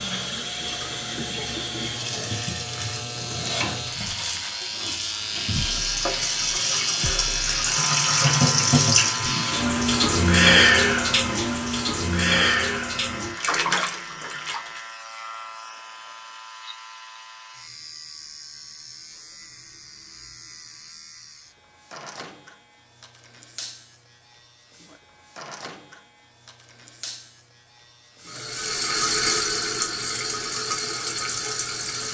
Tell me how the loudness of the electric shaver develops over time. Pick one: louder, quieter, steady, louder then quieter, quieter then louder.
quieter.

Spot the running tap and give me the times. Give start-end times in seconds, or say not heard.
0.0-14.8, 28.2-32.0.